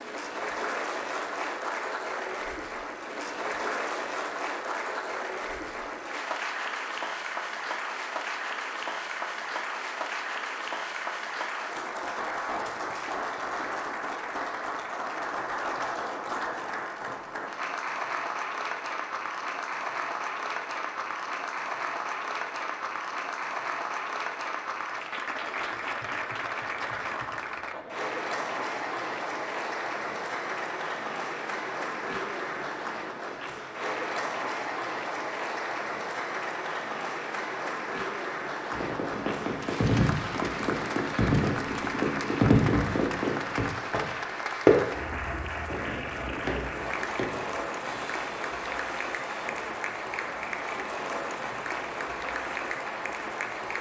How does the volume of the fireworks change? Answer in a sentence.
The volume of the fireworks goes up, then down.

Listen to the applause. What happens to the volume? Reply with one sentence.
The loudness of the applause stays about the same.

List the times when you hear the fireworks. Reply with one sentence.
The fireworks can be heard from 38.7 to 45.0 s and from 45.6 to 49.8 s.